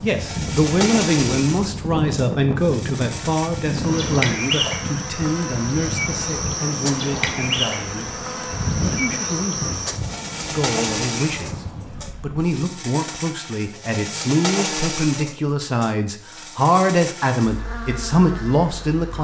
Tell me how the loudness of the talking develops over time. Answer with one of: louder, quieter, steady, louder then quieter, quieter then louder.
quieter then louder.